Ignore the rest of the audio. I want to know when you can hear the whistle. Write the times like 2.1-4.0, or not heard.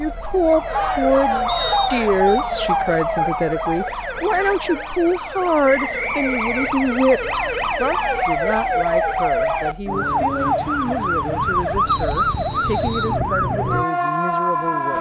1.4-2.5, 5.7-6.9, 11.8-13.2.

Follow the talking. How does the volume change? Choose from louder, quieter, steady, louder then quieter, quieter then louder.
quieter.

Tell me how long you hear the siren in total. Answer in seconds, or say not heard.
15 s.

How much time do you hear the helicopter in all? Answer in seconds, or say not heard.
not heard.